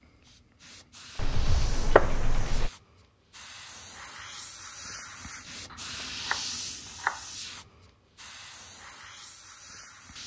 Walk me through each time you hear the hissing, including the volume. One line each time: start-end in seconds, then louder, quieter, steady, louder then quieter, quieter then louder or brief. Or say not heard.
0.1-10.2 louder then quieter.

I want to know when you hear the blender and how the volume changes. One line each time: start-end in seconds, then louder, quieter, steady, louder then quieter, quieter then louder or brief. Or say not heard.
not heard.